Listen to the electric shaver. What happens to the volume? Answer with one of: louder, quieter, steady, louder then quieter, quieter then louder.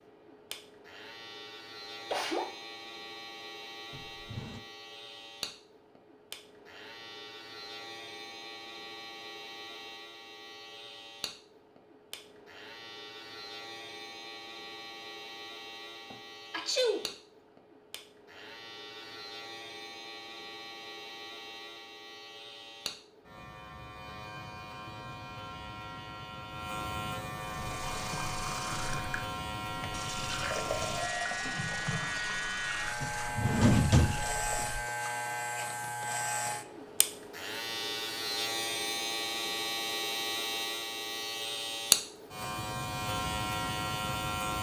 louder.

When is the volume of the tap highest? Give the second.
31 s.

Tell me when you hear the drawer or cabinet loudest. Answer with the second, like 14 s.
34 s.